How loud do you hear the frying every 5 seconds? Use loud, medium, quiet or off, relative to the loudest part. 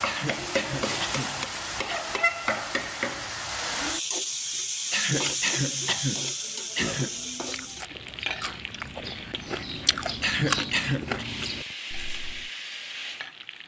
loud, loud, medium.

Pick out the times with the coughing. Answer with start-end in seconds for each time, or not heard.
0.0-2.0, 4.9-7.1, 10.2-11.2.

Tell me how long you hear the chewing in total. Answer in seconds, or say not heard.
6 s.